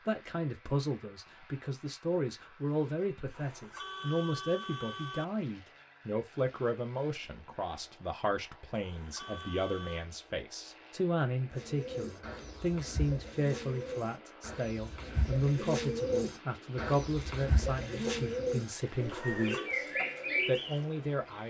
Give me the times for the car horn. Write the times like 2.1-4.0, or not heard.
3.2-5.2, 8.7-10.1, 19.1-19.7.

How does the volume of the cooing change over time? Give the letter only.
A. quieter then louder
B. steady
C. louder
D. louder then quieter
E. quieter
C.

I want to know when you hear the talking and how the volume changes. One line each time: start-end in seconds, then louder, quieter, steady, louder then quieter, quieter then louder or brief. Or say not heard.
0.0-21.4 steady.